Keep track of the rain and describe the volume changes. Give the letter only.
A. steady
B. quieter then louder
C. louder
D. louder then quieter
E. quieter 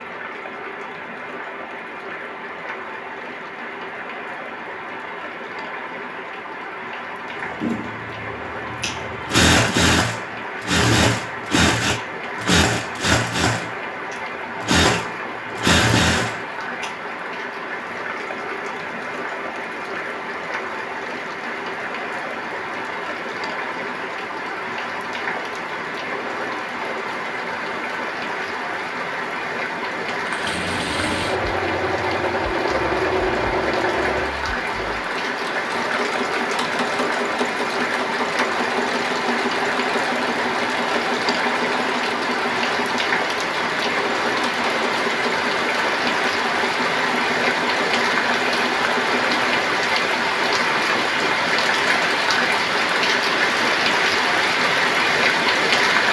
C.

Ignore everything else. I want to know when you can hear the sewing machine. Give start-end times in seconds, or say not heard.
7.6-16.9, 30.1-49.5.